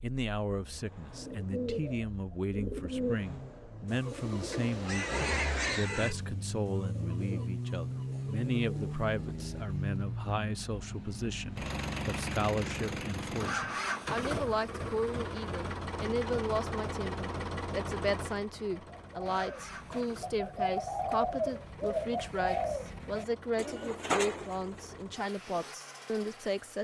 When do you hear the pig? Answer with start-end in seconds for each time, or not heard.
4.5-6.2.